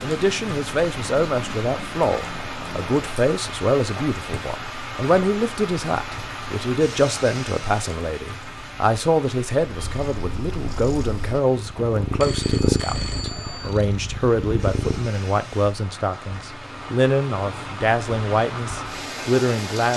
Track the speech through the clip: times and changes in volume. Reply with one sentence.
The speech can be heard from 0.0 to 19.9 s, at a steady volume.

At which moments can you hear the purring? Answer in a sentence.
The purring can be heard from 0.1 to 3.2 s and from 9.6 to 15.2 s.